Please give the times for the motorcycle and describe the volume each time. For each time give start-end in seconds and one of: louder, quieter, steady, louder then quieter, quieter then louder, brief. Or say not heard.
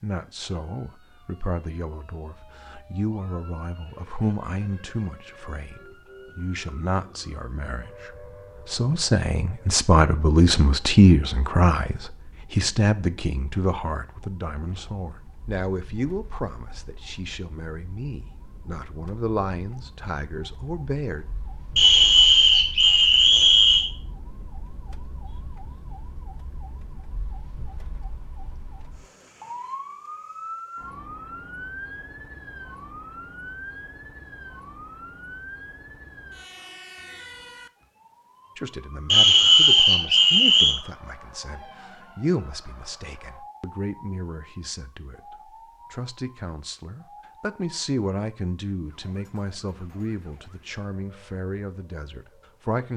not heard.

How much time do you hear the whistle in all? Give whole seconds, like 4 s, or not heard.
4 s.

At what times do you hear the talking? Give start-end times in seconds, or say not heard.
0.0-21.2, 38.5-45.2, 45.9-52.9.